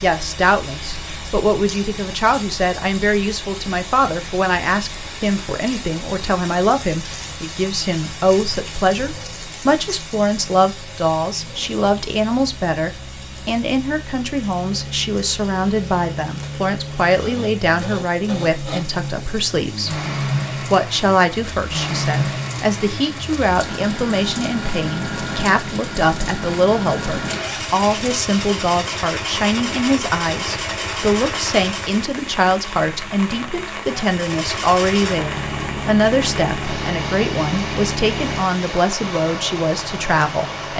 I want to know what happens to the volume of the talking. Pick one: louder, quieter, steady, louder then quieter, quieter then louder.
steady.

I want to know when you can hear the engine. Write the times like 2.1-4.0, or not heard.
0.1-32.1, 34.0-40.7.